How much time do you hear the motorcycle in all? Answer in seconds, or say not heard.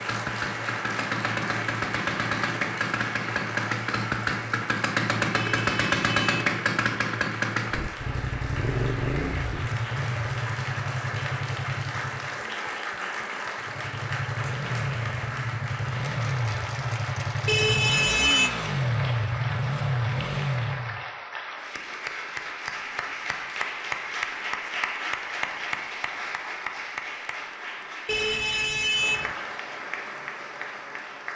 20 s.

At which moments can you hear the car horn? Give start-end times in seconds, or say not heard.
5.3-6.5, 17.4-18.5, 28.1-29.4.